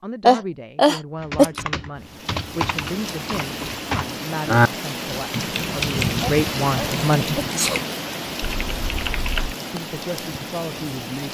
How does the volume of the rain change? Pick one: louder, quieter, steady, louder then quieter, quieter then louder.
louder then quieter.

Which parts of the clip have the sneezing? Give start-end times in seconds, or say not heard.
0.2-1.6, 6.2-7.8.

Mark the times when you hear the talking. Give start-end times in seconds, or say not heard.
0.0-7.4, 9.7-11.2.